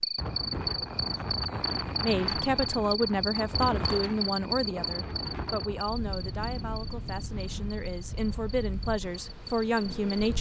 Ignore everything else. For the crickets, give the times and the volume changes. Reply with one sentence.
You can hear the crickets from 0.0 to 10.3 s, getting quieter.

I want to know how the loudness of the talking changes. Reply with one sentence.
The loudness of the talking goes down, then up.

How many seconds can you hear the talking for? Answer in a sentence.
The talking can be heard for 8 seconds in total.